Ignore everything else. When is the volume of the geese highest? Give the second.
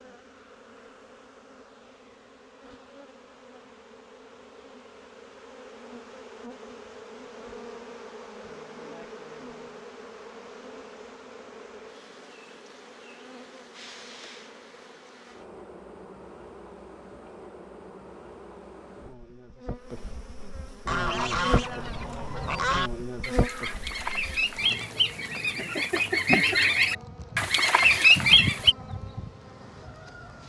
28 s.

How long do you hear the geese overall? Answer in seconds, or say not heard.
8 s.